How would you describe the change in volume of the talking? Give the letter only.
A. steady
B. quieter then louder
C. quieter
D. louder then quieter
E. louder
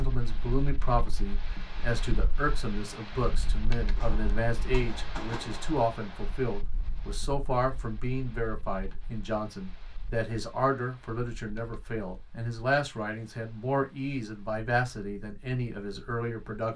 A.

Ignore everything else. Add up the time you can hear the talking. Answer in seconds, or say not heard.
17 s.